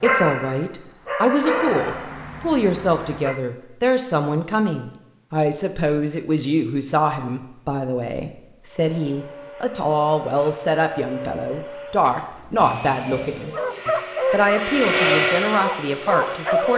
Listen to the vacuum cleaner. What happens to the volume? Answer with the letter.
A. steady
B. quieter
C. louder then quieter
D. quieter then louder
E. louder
E.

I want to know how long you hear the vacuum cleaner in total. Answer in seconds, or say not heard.
8 s.